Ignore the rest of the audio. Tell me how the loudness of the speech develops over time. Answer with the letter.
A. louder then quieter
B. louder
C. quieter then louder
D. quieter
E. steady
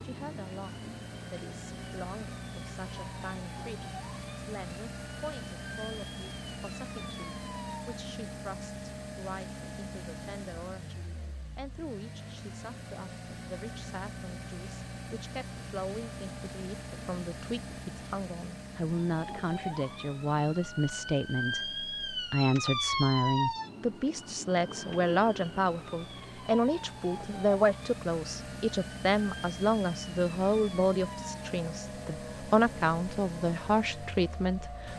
B.